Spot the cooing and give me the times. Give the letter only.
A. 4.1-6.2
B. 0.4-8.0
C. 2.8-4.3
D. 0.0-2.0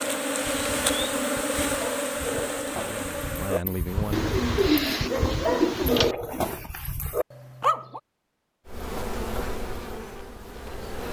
A.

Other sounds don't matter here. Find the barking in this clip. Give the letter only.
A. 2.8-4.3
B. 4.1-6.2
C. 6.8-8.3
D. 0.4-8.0
D.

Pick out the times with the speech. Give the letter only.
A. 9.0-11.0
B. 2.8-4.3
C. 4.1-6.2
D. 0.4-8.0
B.